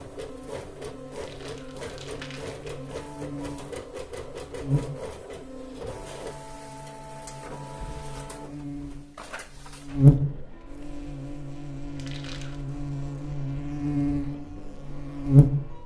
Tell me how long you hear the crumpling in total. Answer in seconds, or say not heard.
3 s.